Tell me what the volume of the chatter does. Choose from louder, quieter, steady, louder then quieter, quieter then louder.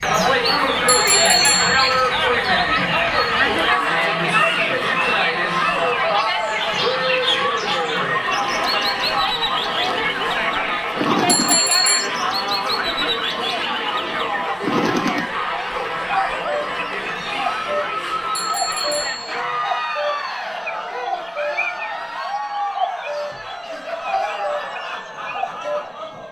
quieter.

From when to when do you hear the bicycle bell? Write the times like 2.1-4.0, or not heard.
0.8-1.9, 11.2-12.1, 18.4-19.4.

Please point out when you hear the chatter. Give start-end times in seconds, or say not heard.
0.0-26.2.